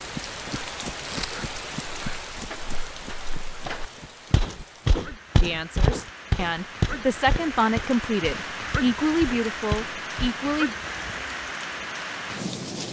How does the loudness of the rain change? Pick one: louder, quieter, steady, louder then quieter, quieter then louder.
quieter then louder.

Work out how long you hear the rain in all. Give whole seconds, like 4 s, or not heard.
13 s.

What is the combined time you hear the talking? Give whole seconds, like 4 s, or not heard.
5 s.